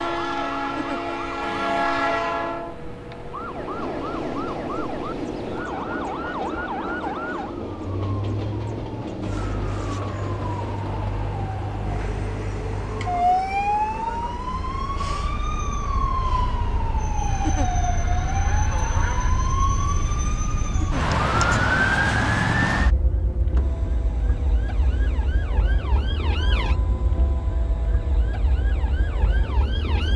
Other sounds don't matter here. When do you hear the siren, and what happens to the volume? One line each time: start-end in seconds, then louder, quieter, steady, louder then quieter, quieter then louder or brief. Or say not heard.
0.0-30.1 louder then quieter.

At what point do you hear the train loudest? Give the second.
2 s.